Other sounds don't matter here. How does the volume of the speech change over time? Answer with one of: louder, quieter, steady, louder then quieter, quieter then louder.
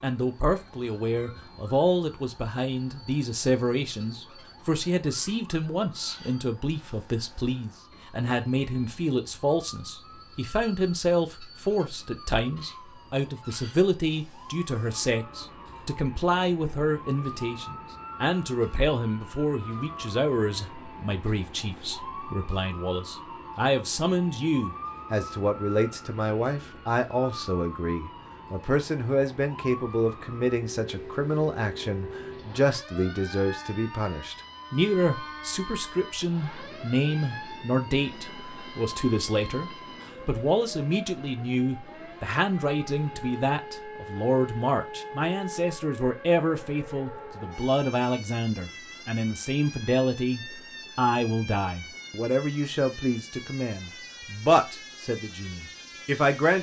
steady.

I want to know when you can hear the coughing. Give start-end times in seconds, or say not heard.
not heard.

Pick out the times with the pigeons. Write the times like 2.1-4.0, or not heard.
not heard.